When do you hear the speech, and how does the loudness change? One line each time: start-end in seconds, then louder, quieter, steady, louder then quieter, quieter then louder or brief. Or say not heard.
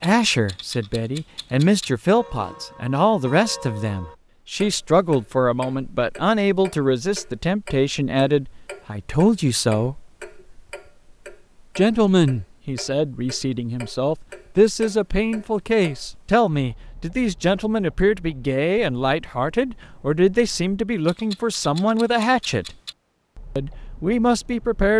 0.0-9.9 steady
11.8-22.8 steady
23.6-24.9 brief.